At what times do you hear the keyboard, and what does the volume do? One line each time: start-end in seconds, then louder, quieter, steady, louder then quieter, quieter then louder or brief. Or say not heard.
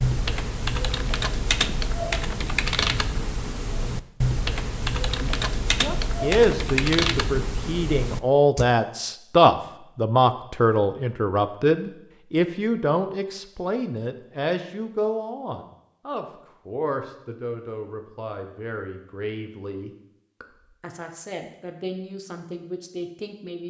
0.0-8.7 steady.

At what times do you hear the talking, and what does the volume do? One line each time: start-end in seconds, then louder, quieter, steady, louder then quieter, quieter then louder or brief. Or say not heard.
5.2-23.6 quieter.